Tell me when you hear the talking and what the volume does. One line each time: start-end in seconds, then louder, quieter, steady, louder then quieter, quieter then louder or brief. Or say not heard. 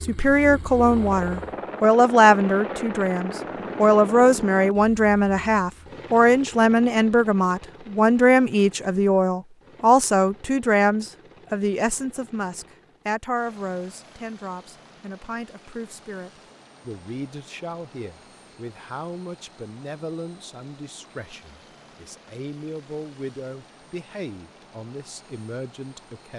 0.0-26.3 quieter.